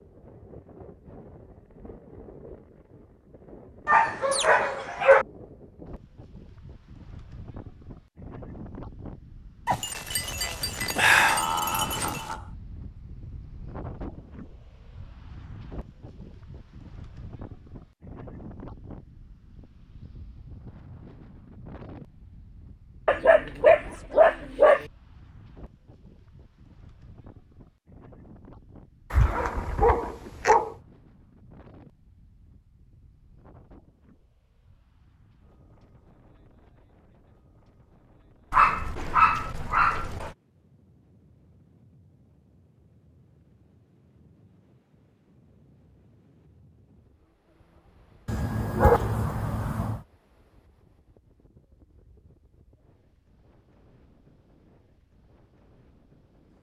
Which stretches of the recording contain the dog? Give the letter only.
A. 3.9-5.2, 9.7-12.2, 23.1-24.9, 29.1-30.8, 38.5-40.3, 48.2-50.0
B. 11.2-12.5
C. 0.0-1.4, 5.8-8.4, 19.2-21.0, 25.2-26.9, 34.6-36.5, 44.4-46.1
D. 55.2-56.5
A.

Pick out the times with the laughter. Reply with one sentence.
You can hear the laughter from 11.2 to 12.5 s.